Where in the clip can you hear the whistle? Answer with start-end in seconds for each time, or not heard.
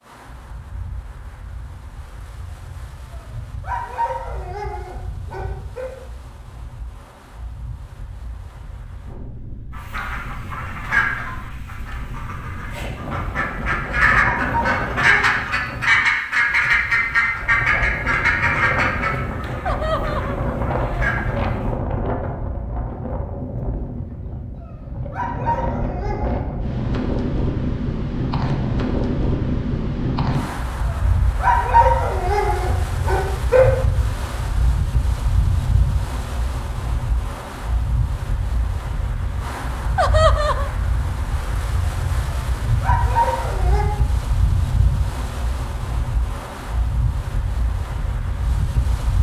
not heard.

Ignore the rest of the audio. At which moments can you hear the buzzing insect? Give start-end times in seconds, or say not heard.
not heard.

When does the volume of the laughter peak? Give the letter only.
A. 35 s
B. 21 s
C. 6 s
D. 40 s
D.